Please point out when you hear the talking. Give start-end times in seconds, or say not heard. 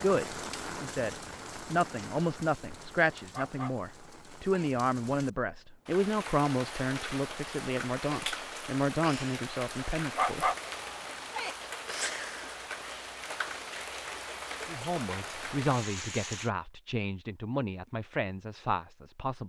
0.0-10.5, 14.7-19.4.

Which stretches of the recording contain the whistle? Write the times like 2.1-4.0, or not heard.
not heard.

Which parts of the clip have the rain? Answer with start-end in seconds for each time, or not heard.
0.0-16.5.